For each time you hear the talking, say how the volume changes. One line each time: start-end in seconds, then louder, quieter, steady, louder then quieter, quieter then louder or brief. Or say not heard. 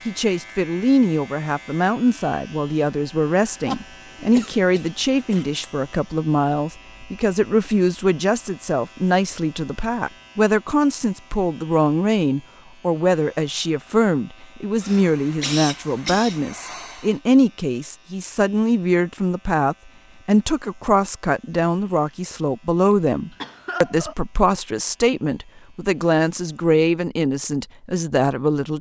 0.1-28.7 steady.